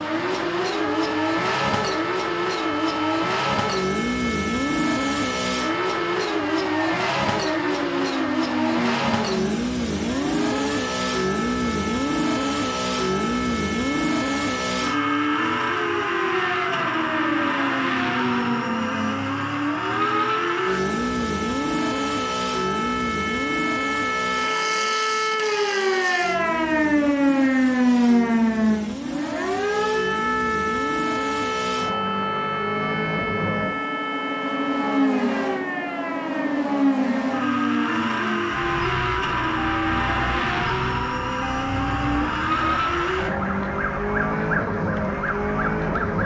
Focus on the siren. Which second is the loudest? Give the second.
28 s.